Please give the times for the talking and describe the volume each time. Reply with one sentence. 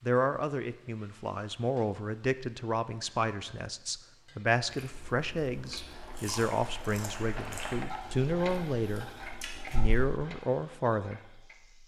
You can hear the talking from 0.0 to 11.4 s, at a steady volume.